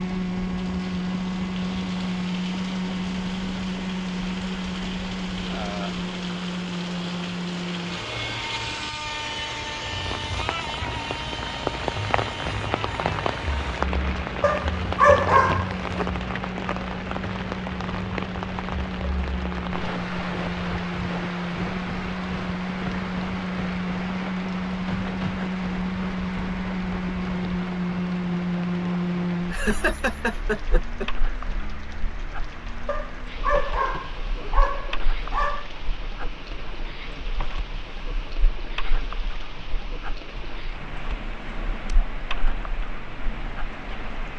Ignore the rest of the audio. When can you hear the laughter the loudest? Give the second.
30 s.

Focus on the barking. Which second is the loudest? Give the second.
15 s.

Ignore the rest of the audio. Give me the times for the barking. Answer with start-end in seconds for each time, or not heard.
14.4-16.1, 32.9-35.8.